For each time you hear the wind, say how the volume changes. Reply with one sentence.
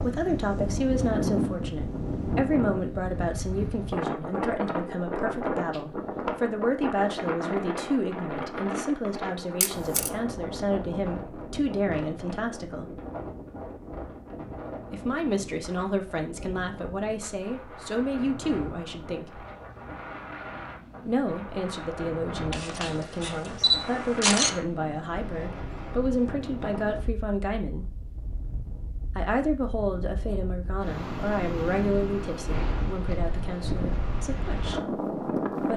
The wind can be heard from 0.0 to 35.7 s, getting quieter then louder.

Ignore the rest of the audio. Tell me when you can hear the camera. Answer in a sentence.
The camera can be heard from 9.6 to 10.1 s and from 22.5 to 24.5 s.